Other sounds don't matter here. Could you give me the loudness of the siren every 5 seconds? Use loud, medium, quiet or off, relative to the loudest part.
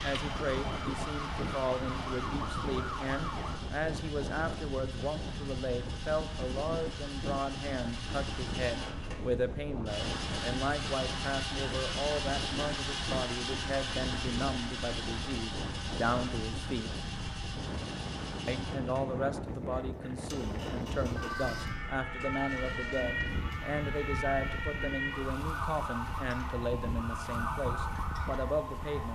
loud, off, off, off, loud, loud.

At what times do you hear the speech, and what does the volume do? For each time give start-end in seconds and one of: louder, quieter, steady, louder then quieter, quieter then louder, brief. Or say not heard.
0.0-16.9 steady
18.4-29.1 steady.